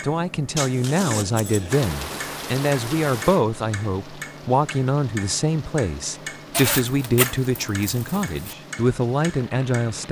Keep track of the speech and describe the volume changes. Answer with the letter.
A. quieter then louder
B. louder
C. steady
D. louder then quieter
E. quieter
C.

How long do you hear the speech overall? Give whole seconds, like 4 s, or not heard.
10 s.